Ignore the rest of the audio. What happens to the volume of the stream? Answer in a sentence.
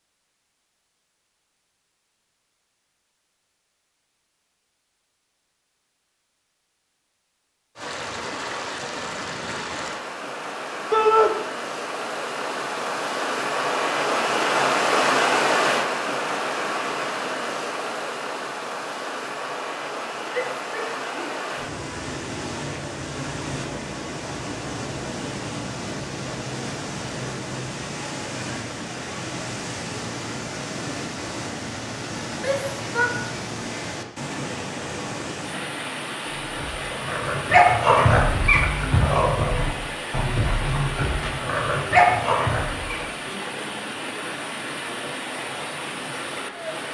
The loudness of the stream goes down.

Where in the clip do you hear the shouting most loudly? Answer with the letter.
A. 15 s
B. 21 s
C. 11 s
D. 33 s
C.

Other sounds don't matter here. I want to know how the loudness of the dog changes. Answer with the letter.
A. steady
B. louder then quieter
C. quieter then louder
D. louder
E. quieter
C.